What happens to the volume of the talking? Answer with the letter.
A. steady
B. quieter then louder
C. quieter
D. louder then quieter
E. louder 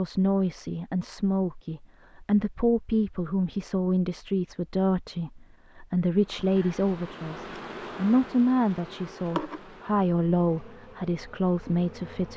A.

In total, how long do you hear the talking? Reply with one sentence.
You can hear the talking for 12 seconds altogether.